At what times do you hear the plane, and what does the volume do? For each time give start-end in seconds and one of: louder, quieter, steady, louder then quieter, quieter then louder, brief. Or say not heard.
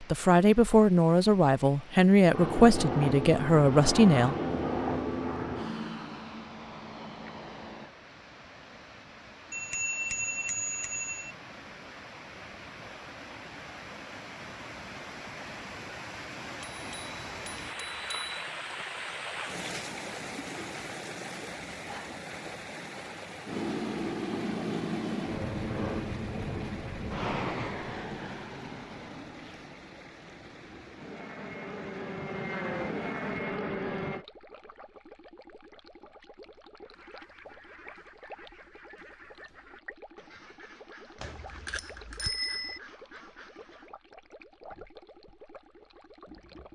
2.3-8.0 quieter
23.4-34.2 quieter then louder.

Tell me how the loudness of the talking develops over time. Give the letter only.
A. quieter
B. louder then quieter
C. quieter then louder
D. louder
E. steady
E.